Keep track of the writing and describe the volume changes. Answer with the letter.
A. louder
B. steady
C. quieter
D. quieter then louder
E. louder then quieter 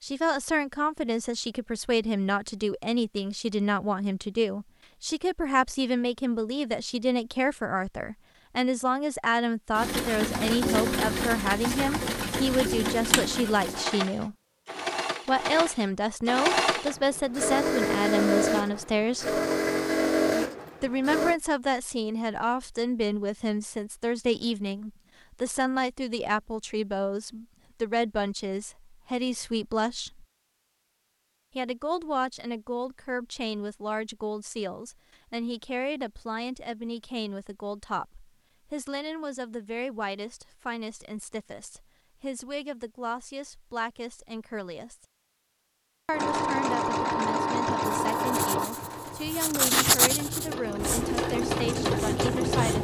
E.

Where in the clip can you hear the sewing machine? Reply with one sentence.
You can hear the sewing machine from 9.8 to 21.4 s and from 46.1 to 52.7 s.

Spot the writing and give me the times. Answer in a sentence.
The writing can be heard from 48.0 to 52.7 s.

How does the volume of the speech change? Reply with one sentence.
The loudness of the speech goes down.